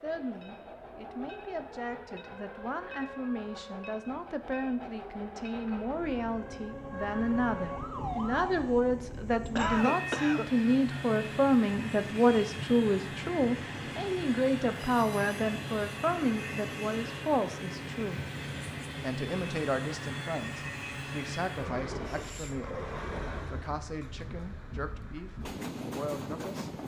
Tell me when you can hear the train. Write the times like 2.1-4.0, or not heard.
0.0-26.8.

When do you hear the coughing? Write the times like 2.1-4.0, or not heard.
9.6-10.5.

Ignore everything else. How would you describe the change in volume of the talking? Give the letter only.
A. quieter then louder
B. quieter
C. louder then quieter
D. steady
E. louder
C.